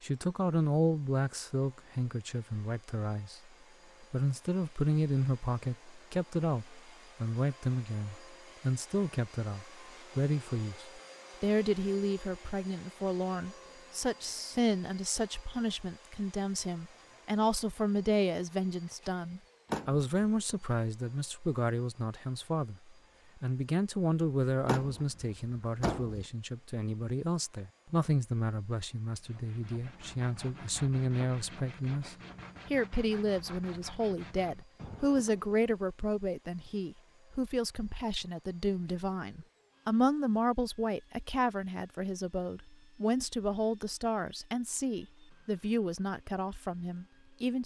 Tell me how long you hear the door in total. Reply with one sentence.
You can hear the door for 2 seconds altogether.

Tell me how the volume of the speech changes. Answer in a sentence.
The volume of the speech stays about the same.